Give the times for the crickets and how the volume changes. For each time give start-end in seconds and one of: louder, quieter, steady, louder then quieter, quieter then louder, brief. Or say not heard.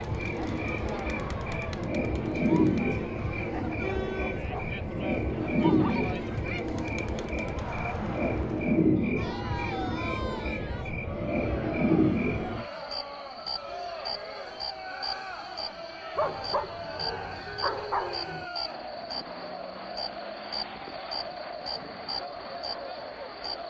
0.0-23.6 quieter.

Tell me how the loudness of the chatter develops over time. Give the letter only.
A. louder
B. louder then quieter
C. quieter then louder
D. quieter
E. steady
E.